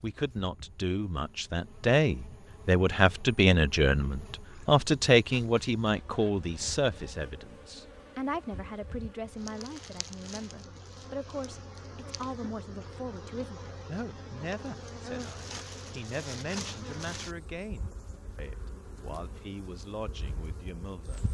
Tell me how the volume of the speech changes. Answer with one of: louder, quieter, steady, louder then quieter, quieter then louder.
quieter.